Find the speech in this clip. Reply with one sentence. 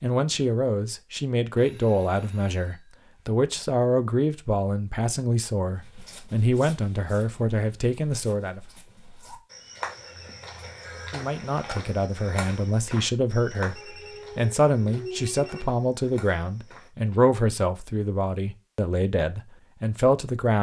You can hear the speech from 0.0 to 8.6 s and from 11.1 to 20.5 s.